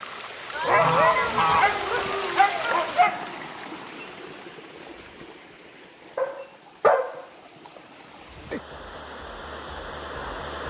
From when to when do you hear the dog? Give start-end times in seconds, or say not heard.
0.5-3.2, 6.2-7.2.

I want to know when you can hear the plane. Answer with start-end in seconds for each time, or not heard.
not heard.